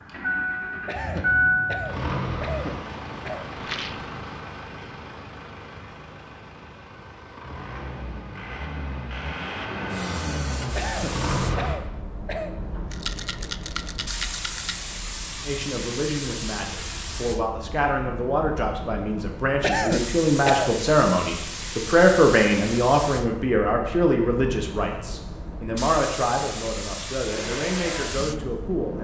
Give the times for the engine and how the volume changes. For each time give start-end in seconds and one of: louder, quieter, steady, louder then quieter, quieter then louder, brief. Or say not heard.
0.0-11.8 quieter then louder
27.2-29.0 brief.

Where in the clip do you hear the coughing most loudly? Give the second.
20 s.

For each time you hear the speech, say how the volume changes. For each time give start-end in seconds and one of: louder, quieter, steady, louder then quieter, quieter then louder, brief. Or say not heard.
15.4-29.0 louder then quieter.